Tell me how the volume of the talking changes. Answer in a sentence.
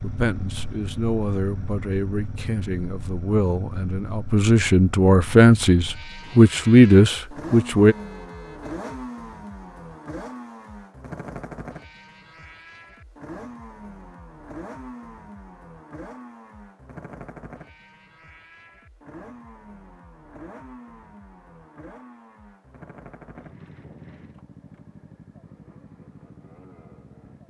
The loudness of the talking goes up.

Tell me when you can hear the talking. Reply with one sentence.
The talking can be heard from 0.0 to 8.0 s.